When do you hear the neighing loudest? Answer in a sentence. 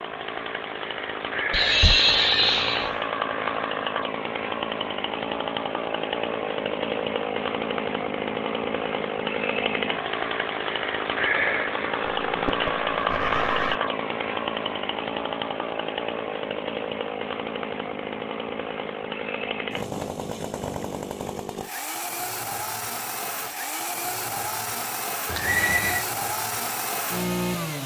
The volume of the neighing peaks at 2 seconds.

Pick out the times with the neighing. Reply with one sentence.
The neighing can be heard from 1.5 to 2.9 s, from 12.2 to 13.8 s and from 25.2 to 26.1 s.